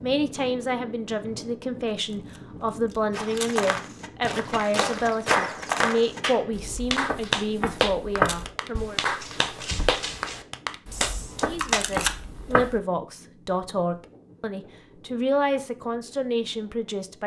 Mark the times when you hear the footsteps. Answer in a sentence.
You can hear the footsteps from 3.1 to 12.8 s.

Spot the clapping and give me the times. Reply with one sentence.
You can hear the clapping from 4.8 to 11.9 s.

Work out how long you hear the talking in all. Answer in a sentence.
The talking can be heard for 15 seconds in total.